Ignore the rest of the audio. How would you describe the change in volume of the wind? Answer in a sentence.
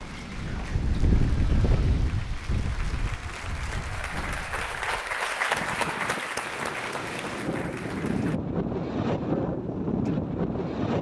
The loudness of the wind goes down, then up.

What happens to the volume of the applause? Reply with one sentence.
The loudness of the applause goes up, then down.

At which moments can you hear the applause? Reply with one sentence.
The applause can be heard from 0.0 to 8.4 s.